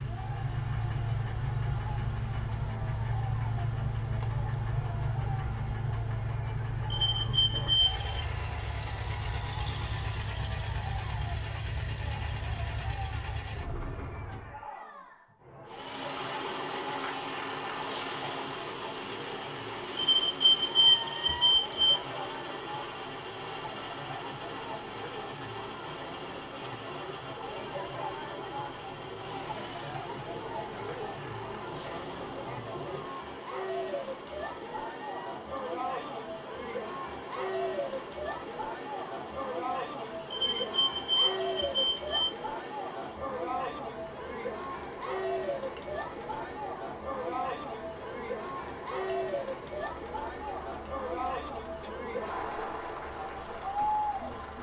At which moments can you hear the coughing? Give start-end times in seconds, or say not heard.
not heard.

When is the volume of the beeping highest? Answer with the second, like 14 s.
21 s.